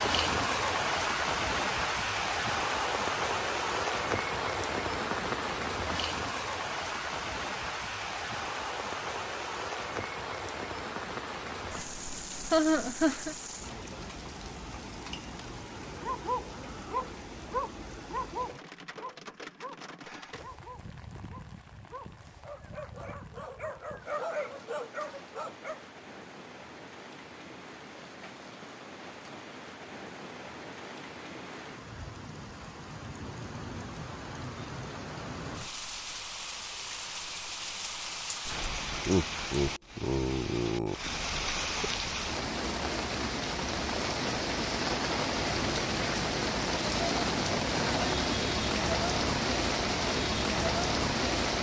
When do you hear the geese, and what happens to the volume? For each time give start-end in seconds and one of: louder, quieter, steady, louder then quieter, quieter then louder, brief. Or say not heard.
not heard.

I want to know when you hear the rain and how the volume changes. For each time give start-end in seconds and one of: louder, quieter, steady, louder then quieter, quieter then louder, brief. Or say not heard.
0.0-51.5 quieter then louder.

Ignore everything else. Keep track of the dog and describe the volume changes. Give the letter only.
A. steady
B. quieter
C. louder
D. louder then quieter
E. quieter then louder
E.